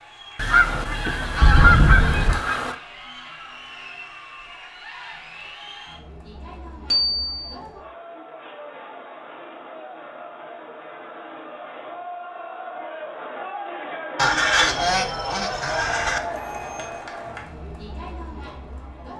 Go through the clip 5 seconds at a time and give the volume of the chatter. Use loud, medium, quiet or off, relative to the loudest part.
medium, medium, loud, loud.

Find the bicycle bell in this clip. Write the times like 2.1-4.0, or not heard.
1.4-2.4, 6.9-7.5, 16.4-16.9.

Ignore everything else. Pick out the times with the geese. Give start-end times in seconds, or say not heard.
0.3-2.8, 14.2-16.2.